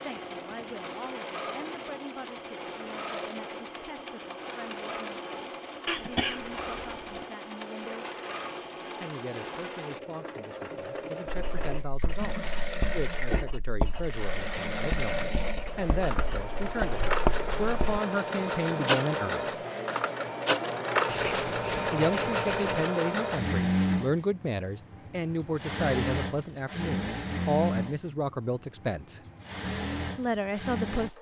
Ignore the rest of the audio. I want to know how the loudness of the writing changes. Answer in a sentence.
The volume of the writing goes up, then down.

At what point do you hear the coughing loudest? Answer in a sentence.
The volume of the coughing peaks at 6 seconds.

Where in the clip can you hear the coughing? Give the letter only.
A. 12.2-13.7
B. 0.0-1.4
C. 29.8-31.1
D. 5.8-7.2
D.